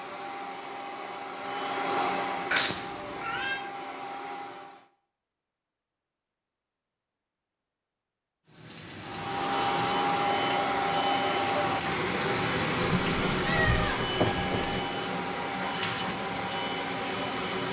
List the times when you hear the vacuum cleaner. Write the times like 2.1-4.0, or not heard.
0.0-4.9, 9.1-17.6.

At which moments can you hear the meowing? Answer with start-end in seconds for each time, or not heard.
2.5-3.6, 12.8-14.8.